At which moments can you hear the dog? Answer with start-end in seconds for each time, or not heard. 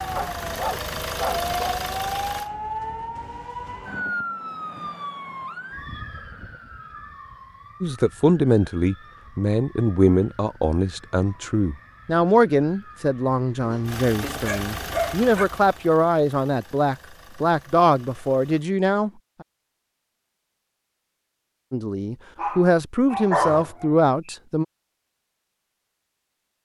0.1-1.8, 13.6-15.4, 22.4-24.4.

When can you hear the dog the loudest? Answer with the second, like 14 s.
23 s.